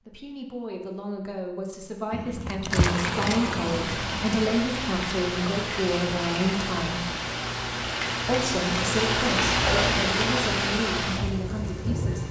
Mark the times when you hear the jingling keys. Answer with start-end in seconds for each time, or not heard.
2.1-4.4.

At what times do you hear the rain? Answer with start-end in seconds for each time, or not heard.
2.7-12.2.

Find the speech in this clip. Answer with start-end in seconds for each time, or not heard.
0.1-7.0, 8.2-12.2.